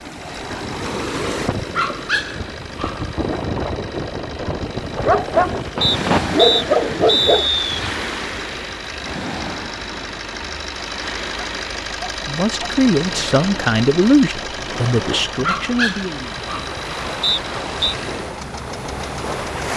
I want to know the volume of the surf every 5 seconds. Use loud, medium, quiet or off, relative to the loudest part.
loud, loud, medium, loud.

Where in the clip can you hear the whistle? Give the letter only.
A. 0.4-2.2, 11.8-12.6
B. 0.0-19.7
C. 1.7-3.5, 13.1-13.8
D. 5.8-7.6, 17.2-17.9
D.